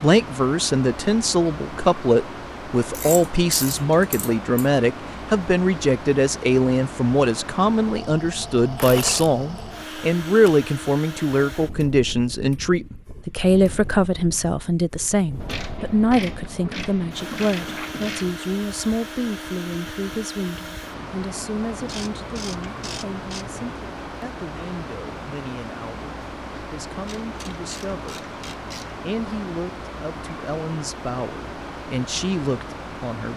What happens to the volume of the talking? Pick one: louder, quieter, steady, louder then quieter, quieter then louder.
quieter.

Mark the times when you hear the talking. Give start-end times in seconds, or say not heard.
0.0-28.2, 29.0-33.3.